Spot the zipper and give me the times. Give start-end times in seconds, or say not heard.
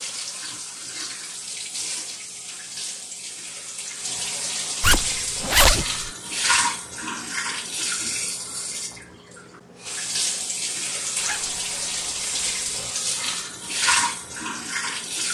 4.8-6.1, 11.2-12.7.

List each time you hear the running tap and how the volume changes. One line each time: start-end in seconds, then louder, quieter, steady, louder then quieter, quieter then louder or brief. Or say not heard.
0.0-15.2 louder.